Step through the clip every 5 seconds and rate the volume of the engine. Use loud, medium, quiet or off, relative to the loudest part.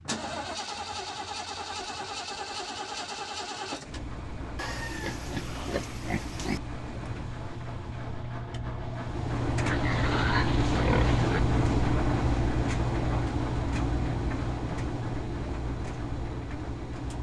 medium, medium, loud, medium.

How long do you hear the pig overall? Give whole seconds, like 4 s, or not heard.
4 s.